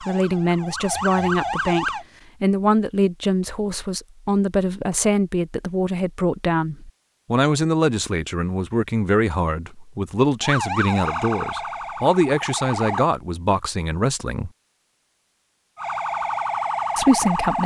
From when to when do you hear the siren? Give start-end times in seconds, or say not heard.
0.0-2.0, 10.4-13.1, 15.8-17.6.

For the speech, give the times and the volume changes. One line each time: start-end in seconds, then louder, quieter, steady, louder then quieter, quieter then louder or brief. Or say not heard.
0.0-14.5 steady
16.9-17.6 brief.